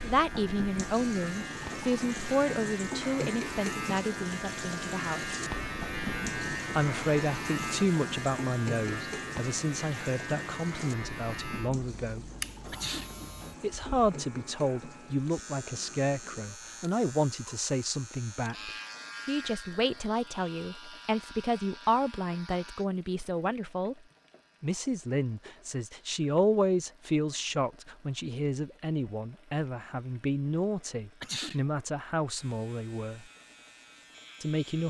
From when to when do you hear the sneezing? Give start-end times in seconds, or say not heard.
12.7-13.1, 31.2-31.6.